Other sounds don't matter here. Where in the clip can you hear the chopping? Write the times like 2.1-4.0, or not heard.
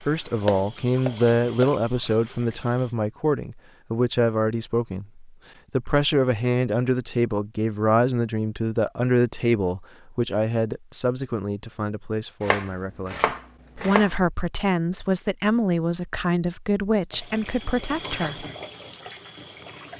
0.5-1.8, 12.4-14.2.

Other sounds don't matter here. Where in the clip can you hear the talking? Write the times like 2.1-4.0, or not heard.
0.0-18.4.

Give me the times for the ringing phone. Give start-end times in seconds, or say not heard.
not heard.